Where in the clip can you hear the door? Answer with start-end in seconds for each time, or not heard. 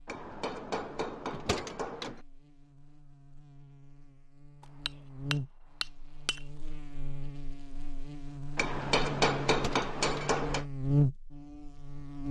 1.3-2.2, 9.4-10.3.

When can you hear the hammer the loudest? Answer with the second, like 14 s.
9 s.